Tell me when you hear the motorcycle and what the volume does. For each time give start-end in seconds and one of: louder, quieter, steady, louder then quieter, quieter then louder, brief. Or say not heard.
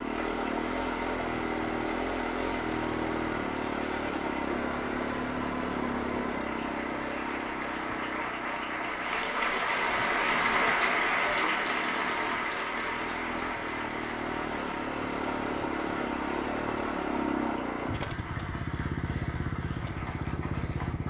0.0-21.0 quieter then louder.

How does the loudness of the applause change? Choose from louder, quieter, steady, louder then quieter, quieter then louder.
louder then quieter.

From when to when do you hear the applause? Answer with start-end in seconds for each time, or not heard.
0.0-21.0.